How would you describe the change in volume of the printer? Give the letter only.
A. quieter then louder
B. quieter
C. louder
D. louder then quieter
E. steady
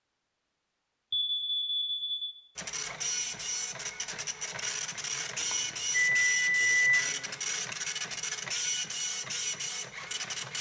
E.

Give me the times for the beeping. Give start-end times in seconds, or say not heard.
1.1-2.2, 5.4-7.0.